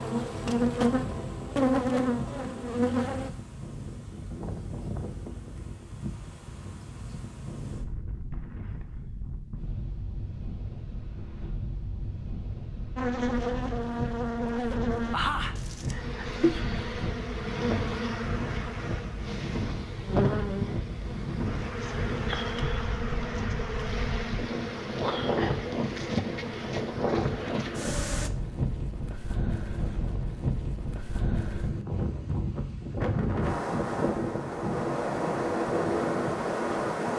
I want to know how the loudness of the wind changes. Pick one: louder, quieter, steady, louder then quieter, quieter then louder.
louder.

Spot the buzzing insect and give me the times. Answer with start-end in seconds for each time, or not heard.
0.0-3.3, 12.9-28.3.